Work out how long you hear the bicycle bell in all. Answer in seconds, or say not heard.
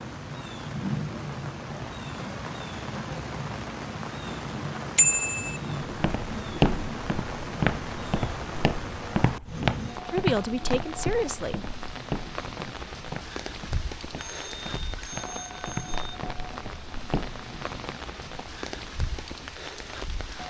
3 s.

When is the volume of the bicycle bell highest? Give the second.
5 s.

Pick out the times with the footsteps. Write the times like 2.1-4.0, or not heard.
5.8-17.4.